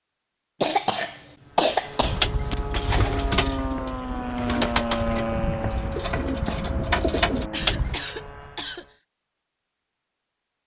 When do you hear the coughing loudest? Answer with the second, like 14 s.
1 s.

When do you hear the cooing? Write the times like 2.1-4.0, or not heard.
2.0-8.0.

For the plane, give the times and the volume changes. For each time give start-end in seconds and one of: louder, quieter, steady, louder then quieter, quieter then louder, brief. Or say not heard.
1.4-8.9 louder then quieter.